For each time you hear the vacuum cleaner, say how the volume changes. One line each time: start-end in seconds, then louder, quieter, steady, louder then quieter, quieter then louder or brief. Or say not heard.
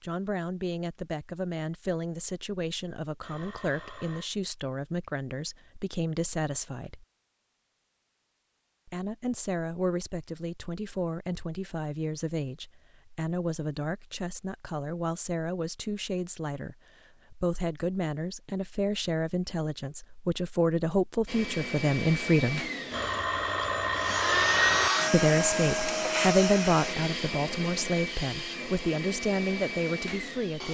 21.2-30.6 louder then quieter.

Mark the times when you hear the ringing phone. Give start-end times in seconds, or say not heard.
3.2-4.3, 22.9-24.9.